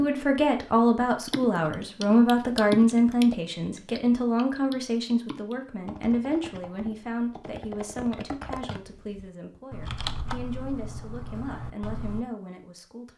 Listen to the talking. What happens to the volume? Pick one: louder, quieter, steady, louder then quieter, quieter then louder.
quieter.